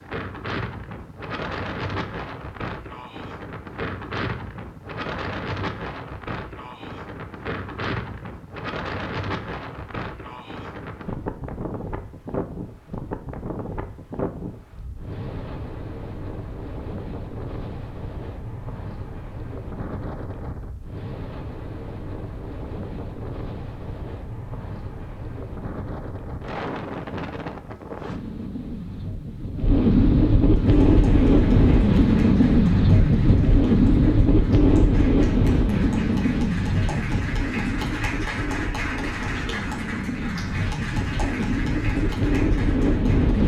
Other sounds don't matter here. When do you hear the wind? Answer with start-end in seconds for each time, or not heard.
0.0-43.4.